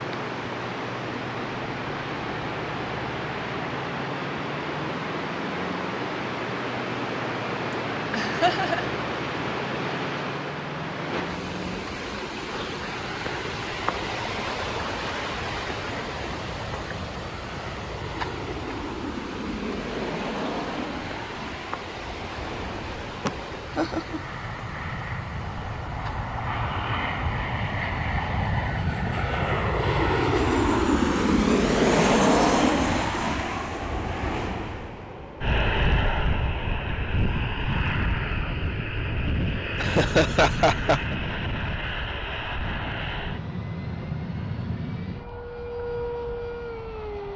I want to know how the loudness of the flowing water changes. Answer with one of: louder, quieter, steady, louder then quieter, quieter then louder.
quieter.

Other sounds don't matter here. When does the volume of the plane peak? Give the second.
32 s.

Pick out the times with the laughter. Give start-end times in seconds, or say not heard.
8.1-8.9, 23.2-24.2, 39.8-41.1.